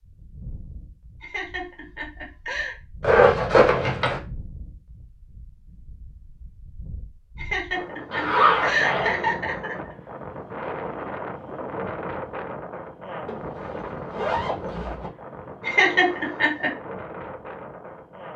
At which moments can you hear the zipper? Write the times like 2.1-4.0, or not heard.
3.0-4.2, 8.1-9.2, 13.2-15.1.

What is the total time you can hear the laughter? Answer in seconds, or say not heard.
5 s.